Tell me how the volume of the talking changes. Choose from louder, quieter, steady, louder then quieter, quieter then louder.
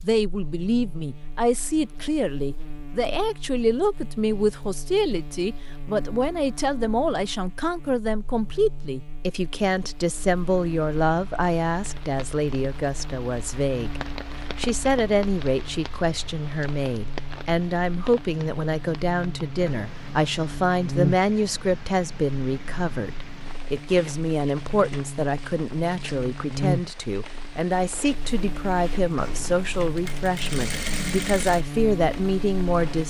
steady.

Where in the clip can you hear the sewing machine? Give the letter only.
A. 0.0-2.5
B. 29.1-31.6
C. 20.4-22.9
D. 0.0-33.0
B.